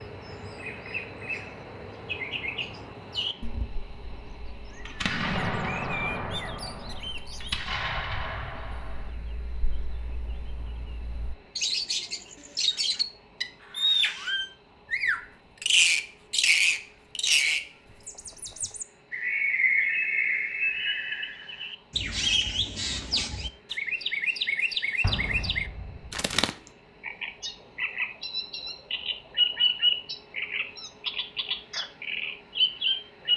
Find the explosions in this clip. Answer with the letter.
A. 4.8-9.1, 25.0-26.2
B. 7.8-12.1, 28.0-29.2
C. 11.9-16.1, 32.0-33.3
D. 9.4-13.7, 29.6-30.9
A.